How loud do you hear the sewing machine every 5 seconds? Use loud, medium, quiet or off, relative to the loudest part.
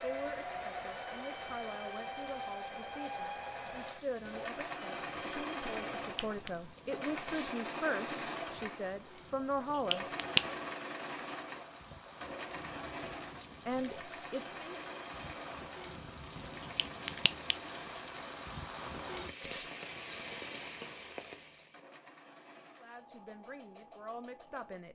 loud, loud, loud, medium, quiet.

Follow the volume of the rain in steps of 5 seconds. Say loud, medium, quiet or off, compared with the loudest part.
medium, medium, medium, loud, loud.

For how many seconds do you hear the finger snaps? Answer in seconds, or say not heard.
2 s.